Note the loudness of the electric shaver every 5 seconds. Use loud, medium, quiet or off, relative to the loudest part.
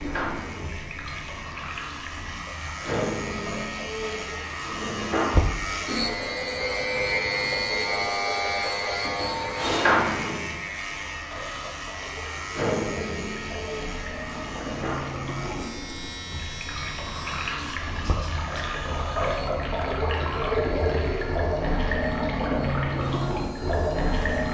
medium, loud, medium, quiet, quiet.